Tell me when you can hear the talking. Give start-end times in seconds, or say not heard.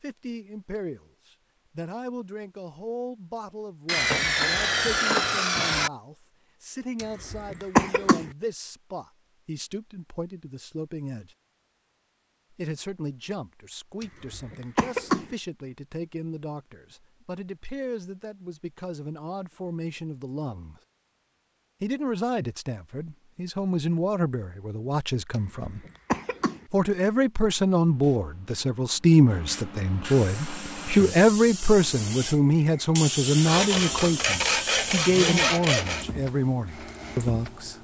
0.0-11.3, 12.5-20.8, 21.8-25.8, 26.7-37.7.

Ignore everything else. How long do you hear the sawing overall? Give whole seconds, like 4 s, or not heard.
5 s.